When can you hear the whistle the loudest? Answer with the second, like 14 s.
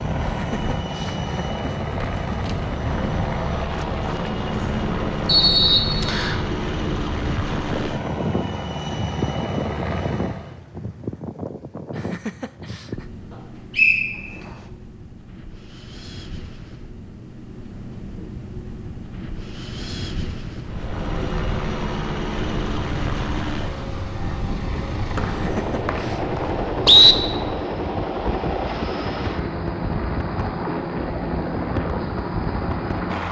27 s.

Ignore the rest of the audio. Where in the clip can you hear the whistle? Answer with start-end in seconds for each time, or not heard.
5.2-6.4, 13.8-14.2, 25.1-27.1.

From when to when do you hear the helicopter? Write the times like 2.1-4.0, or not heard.
0.0-10.6, 20.6-33.2.